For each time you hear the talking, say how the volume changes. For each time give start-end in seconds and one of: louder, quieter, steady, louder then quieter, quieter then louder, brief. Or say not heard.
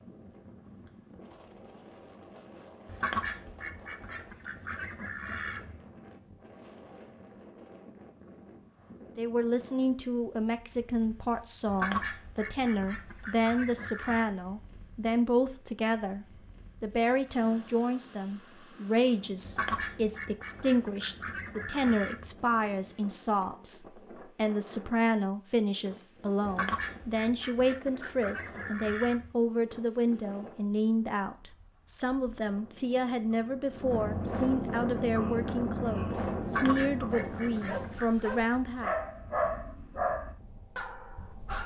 9.2-38.9 steady.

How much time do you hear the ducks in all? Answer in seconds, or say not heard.
13 s.